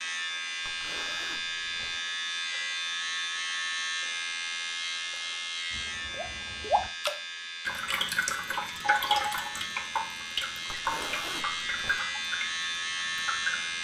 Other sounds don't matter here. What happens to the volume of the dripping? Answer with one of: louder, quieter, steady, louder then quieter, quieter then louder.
quieter.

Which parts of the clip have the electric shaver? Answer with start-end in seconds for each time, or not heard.
0.0-13.7.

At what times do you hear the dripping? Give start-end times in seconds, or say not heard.
5.7-13.7.